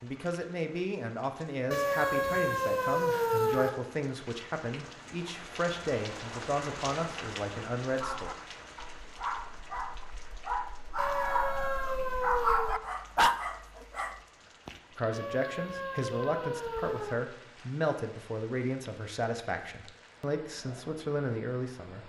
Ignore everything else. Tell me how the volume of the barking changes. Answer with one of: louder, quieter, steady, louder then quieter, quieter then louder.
louder.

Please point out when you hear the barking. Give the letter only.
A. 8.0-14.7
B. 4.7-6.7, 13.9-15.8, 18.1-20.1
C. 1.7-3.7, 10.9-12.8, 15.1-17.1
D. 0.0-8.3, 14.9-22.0
A.